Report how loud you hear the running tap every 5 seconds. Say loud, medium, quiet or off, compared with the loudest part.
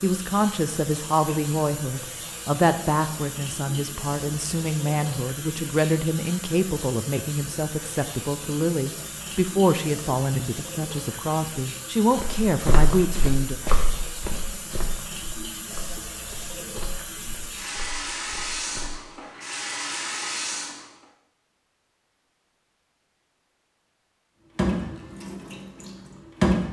medium, medium, medium, medium, loud, loud.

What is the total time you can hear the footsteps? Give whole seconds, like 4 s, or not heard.
7 s.